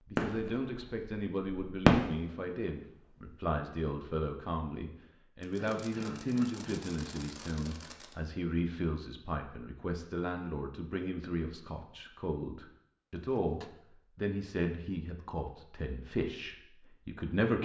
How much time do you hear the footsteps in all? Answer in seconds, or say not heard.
not heard.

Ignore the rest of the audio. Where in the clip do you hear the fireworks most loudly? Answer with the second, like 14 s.
2 s.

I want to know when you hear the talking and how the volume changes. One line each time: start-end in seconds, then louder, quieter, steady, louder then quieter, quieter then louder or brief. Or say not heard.
0.1-17.6 steady.